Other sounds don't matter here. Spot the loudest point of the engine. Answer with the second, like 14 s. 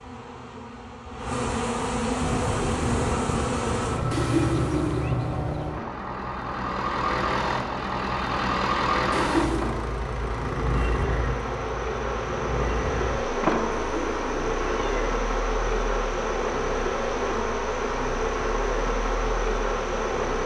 9 s.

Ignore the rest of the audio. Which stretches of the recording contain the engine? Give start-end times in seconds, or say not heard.
2.2-20.4.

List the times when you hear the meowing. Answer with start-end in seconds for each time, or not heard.
4.1-5.2, 9.1-9.7, 13.8-15.1.